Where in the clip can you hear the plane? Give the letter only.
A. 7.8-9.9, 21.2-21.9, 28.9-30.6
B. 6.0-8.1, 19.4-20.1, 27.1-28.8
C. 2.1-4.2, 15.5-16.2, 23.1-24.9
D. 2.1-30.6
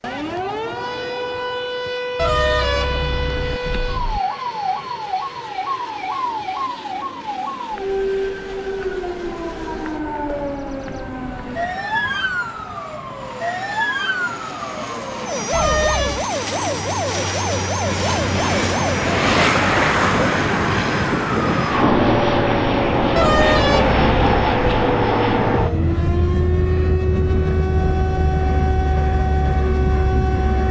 D.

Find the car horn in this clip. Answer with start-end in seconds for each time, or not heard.
2.1-4.2, 15.5-16.2, 23.1-24.9.